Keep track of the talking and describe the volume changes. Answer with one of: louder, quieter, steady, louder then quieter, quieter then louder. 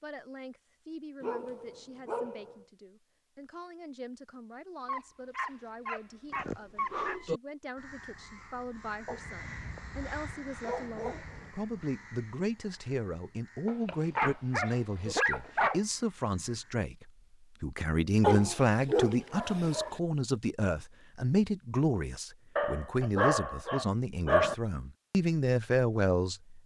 louder.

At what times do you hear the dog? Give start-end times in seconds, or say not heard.
1.2-2.6, 4.8-7.2, 9.1-11.5, 13.7-15.8, 18.2-19.9, 22.6-24.6.